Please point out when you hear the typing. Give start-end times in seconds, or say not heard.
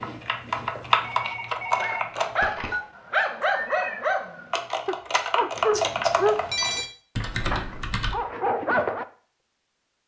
0.0-2.5, 4.5-8.2.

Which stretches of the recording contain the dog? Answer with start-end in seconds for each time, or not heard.
1.8-9.1.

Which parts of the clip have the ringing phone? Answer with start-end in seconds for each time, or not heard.
1.0-2.8, 5.7-6.9.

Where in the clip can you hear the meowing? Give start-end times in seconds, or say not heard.
3.5-4.0.